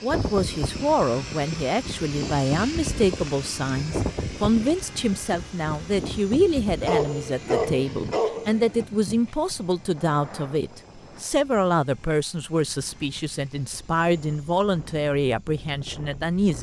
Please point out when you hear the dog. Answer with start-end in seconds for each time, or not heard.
6.8-8.8.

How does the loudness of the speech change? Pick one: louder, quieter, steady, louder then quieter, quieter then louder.
steady.